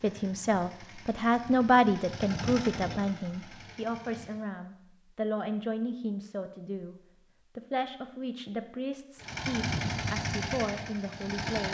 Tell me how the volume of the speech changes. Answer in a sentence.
The loudness of the speech goes down.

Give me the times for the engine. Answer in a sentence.
You can hear the engine from 0.0 to 4.5 s and from 9.2 to 11.6 s.